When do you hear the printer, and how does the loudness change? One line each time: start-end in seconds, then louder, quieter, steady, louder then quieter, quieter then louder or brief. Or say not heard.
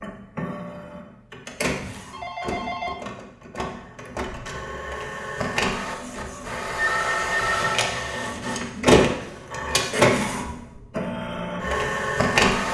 0.0-12.6 louder.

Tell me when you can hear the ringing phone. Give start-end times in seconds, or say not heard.
1.9-3.0, 6.8-7.8.